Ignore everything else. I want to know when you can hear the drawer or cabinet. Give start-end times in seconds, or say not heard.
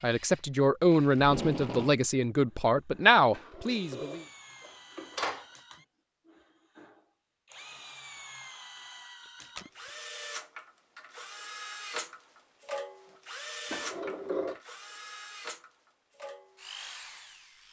3.3-5.5, 13.7-14.6.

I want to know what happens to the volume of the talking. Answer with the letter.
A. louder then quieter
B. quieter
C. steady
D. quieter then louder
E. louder
C.